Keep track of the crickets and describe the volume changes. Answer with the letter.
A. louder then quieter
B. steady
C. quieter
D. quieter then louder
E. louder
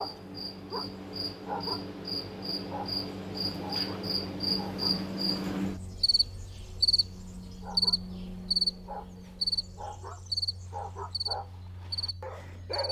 A.